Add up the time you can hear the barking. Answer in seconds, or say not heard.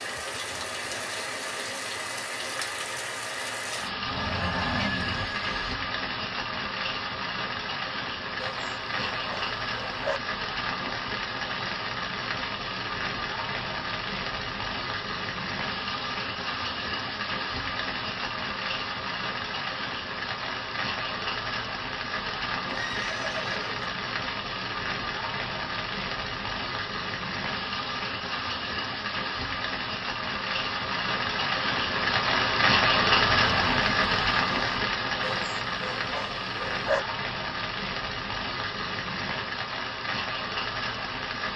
4 s.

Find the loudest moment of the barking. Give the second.
37 s.